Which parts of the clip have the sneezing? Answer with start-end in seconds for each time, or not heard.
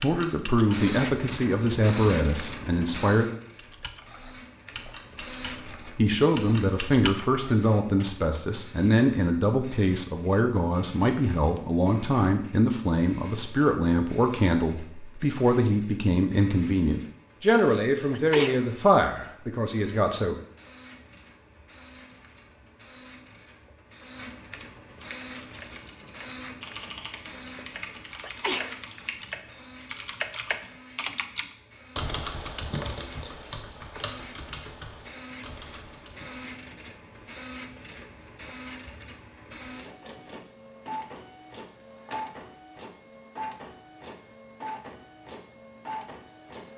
18.1-18.6, 28.2-28.8.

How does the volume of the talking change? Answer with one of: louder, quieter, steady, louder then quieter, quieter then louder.
steady.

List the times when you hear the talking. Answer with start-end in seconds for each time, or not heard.
0.0-3.3, 6.0-20.4.